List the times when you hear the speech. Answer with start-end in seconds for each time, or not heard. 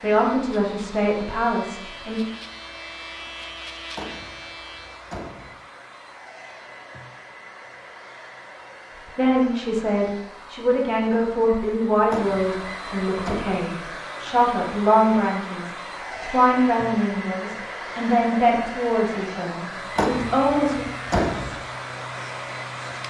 0.0-2.2, 9.2-20.9.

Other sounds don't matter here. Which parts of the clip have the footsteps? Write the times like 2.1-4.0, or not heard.
not heard.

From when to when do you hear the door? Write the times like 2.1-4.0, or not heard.
4.0-5.5, 12.1-13.6, 19.9-21.6.